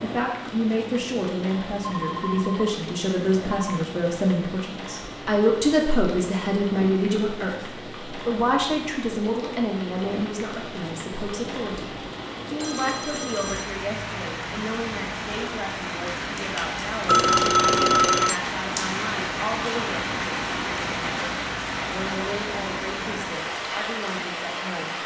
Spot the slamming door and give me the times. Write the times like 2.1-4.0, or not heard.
not heard.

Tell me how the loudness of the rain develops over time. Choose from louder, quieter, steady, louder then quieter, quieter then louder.
louder.